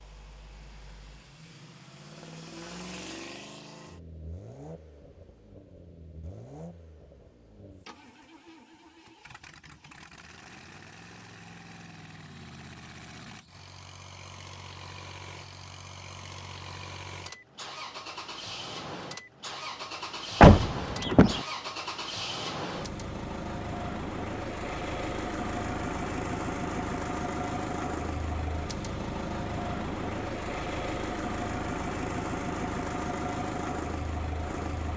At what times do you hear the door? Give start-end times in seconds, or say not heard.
20.4-21.4.